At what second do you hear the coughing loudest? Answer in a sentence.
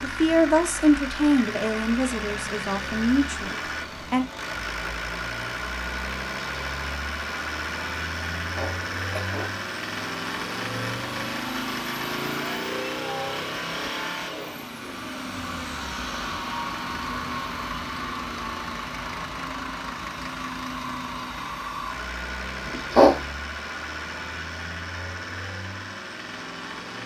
The volume of the coughing peaks at 23 seconds.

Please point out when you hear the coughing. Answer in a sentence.
You can hear the coughing from 8.5 to 9.6 s and from 22.6 to 23.1 s.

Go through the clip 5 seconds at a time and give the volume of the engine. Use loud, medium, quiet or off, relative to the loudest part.
loud, loud, loud, loud, loud, medium.